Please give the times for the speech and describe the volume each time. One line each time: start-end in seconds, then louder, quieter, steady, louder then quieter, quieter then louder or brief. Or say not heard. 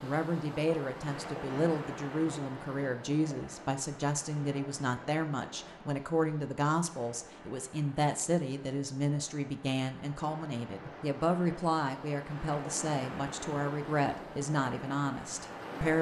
0.0-15.9 steady.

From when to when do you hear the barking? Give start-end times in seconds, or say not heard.
not heard.